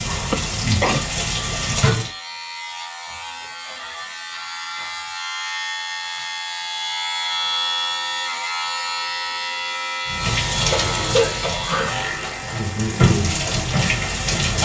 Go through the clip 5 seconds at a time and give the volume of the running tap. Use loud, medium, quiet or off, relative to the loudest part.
loud, off, loud.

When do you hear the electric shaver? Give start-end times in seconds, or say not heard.
0.0-14.4.